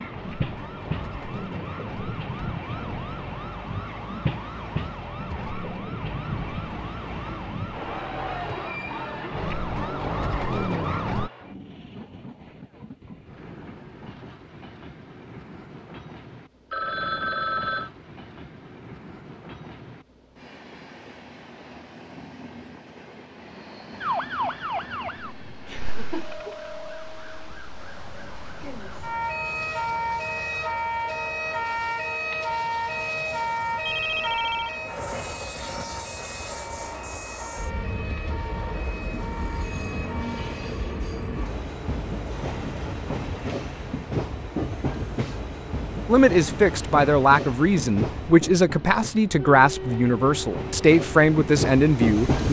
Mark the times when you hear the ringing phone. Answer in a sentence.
The ringing phone can be heard from 16.7 to 17.9 s and from 33.9 to 34.8 s.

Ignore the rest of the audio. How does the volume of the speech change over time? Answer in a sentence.
The volume of the speech stays about the same.